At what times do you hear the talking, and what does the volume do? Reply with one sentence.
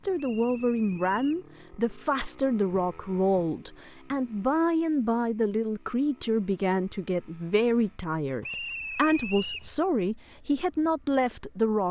You can hear the talking from 0.0 to 11.8 s, at a steady volume.